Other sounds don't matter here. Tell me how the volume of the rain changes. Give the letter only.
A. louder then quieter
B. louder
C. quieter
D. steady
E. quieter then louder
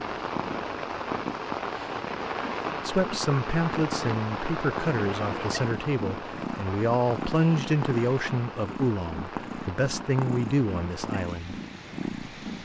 C.